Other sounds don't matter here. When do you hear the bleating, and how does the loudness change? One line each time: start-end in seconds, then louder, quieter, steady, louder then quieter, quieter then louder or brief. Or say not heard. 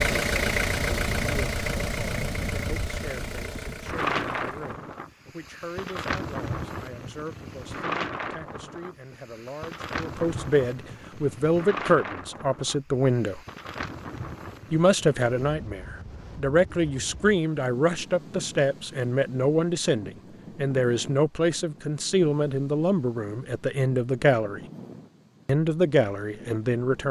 not heard.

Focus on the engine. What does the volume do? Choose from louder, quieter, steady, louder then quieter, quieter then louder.
quieter.